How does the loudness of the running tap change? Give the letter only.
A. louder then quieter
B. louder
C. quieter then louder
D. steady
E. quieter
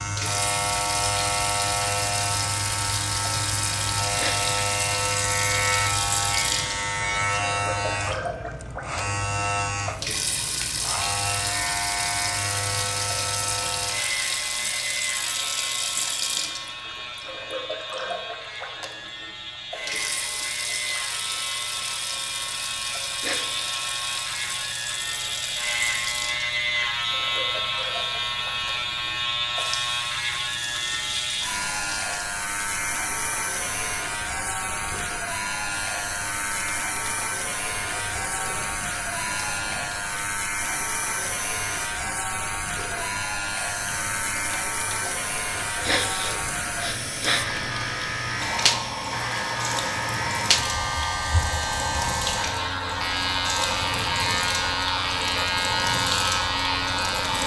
C.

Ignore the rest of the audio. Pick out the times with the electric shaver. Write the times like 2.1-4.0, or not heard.
0.0-57.4.